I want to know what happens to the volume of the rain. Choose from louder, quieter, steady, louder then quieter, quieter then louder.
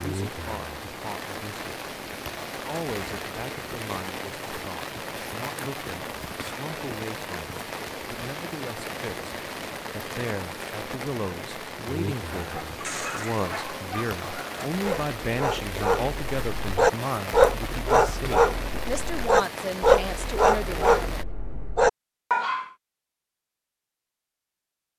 steady.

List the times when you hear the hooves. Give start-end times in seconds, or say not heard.
not heard.